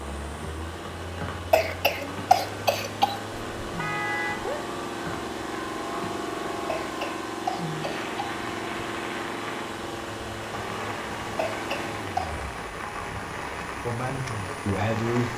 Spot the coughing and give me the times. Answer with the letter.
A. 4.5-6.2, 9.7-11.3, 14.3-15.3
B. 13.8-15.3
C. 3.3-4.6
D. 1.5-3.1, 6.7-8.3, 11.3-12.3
D.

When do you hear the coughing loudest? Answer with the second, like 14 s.
2 s.